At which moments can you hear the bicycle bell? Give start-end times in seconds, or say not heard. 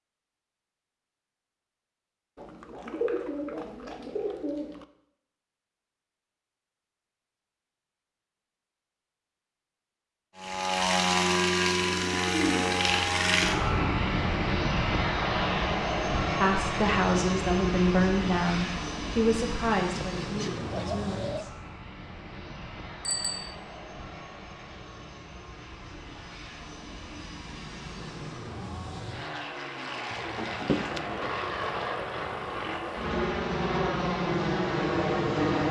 23.1-23.6.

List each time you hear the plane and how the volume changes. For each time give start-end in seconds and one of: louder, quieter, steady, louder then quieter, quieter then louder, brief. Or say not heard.
10.3-35.6 quieter then louder.